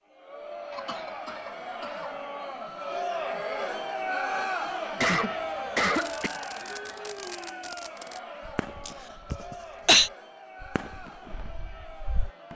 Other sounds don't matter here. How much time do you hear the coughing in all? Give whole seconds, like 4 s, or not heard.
4 s.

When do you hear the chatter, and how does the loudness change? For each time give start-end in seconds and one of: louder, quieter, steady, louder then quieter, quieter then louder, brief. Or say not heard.
0.1-12.5 louder then quieter.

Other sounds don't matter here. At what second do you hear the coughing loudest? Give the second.
10 s.